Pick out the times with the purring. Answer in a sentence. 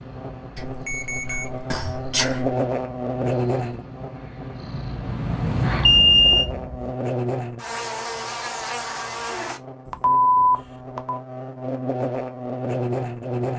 The purring can be heard from 0.0 to 7.0 s.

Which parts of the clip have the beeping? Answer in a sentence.
You can hear the beeping from 0.6 to 2.5 s, from 5.8 to 6.5 s and from 9.8 to 11.2 s.